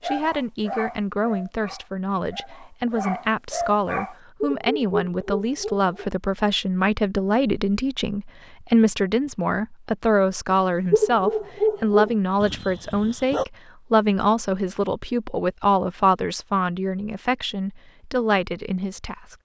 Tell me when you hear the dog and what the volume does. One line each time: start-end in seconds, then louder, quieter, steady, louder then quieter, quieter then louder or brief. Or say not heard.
0.0-6.1 quieter then louder
10.5-13.4 brief.